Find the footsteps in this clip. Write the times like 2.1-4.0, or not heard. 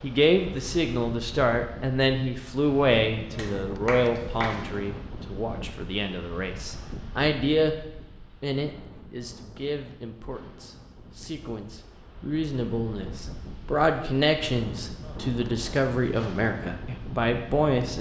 not heard.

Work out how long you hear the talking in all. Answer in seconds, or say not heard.
18 s.